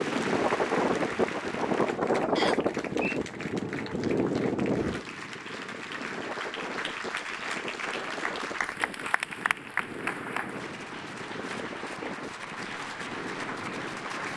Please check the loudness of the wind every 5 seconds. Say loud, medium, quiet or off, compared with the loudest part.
loud, quiet, quiet.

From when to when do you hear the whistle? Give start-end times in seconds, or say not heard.
2.4-3.2.